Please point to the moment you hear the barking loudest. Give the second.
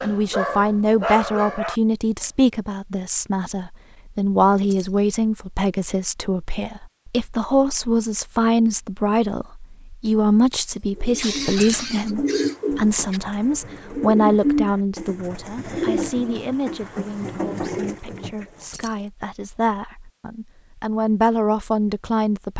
1 s.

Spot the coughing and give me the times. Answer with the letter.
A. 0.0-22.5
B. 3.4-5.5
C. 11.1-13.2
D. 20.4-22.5
C.